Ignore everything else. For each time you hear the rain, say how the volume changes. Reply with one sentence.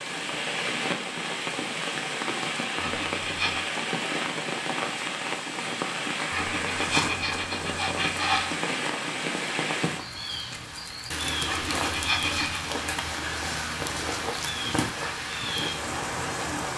You can hear the rain from 0.0 to 16.7 s, at a steady volume.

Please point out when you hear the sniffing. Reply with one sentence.
The sniffing can be heard from 2.8 to 3.6 s, from 6.3 to 8.6 s and from 11.4 to 12.7 s.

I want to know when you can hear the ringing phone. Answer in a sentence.
You can't hear the ringing phone here.